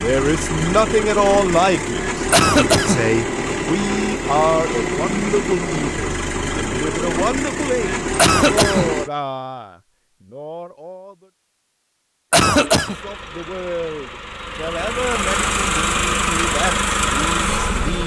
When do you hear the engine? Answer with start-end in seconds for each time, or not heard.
0.0-9.1, 12.6-18.0.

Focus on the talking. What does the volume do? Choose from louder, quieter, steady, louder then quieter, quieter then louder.
quieter.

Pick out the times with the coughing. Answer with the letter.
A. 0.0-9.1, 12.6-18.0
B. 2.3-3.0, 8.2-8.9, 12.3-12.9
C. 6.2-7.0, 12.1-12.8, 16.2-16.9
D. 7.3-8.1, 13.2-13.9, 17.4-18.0
B.